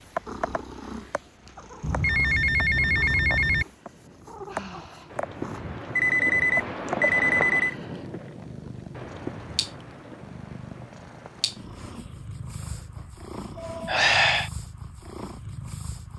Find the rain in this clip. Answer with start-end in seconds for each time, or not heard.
0.0-12.6.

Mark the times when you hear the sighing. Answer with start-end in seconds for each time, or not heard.
4.5-5.2, 13.8-14.5.